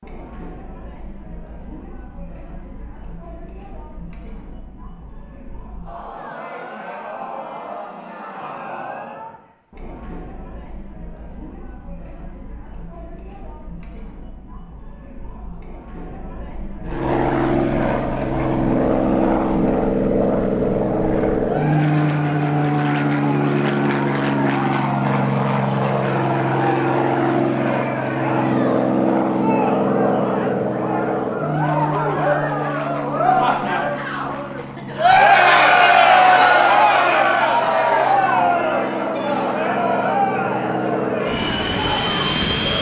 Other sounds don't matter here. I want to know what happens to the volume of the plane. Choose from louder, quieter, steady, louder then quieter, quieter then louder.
quieter then louder.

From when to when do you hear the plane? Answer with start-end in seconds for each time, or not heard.
16.9-42.7.